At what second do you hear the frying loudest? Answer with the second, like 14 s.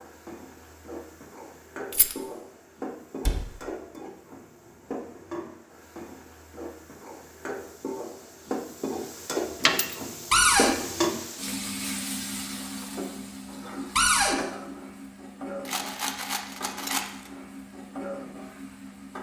11 s.